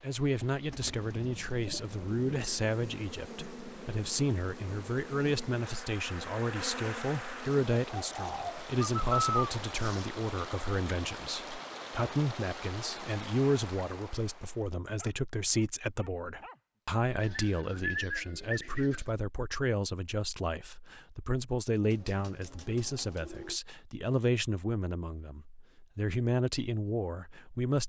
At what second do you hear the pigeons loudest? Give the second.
9 s.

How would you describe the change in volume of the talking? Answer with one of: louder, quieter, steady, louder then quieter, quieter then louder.
steady.